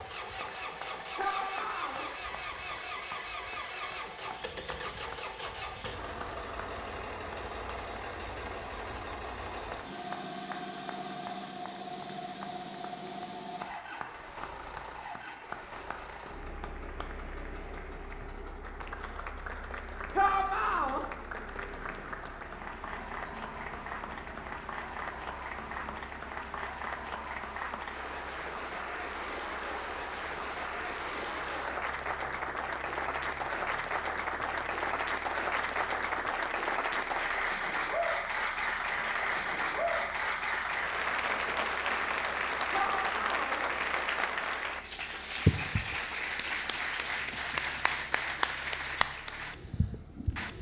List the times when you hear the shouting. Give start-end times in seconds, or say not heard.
1.1-2.0, 20.1-21.1, 42.7-43.6.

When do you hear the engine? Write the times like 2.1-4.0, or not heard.
0.0-50.5.